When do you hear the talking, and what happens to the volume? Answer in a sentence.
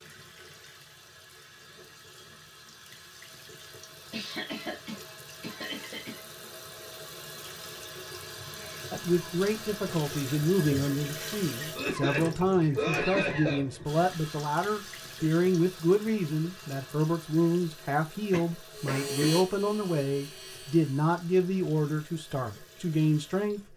The talking can be heard from 8.9 to 23.6 s, at a steady volume.